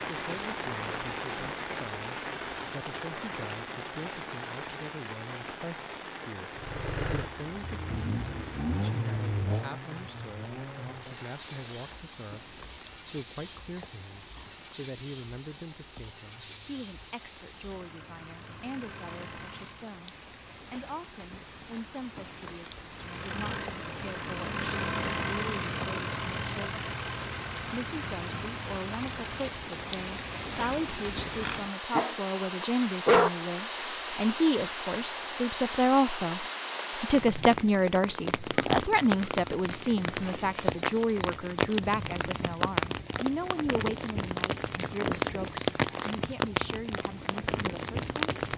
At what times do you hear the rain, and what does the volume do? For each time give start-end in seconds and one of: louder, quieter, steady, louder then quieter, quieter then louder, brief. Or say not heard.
0.0-48.5 quieter then louder.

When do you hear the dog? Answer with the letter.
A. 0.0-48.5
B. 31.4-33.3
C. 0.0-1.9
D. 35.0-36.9
B.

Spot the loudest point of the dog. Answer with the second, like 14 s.
33 s.